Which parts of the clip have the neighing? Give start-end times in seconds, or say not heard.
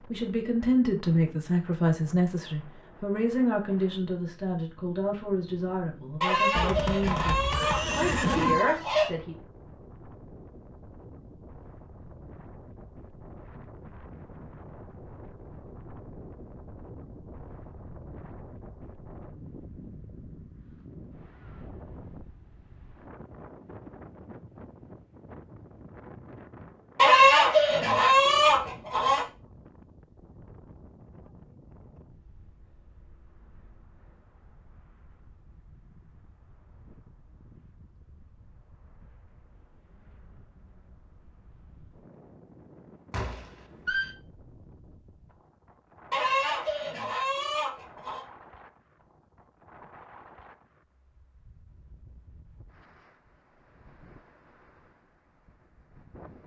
6.5-8.6, 43.1-44.1.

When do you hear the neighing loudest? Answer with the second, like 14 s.
8 s.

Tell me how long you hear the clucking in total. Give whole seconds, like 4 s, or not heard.
7 s.